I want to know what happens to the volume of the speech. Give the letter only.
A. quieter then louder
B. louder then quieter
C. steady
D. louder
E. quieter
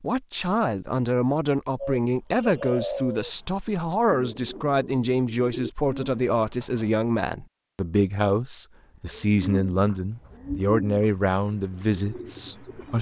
C.